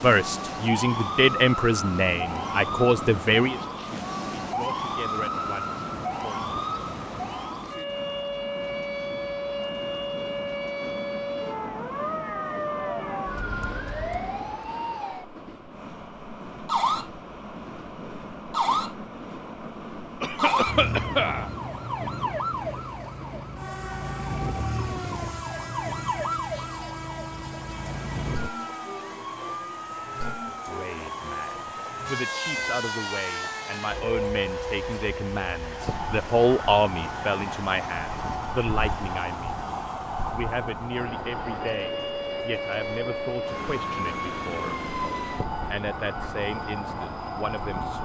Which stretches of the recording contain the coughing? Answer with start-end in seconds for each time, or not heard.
20.2-21.5.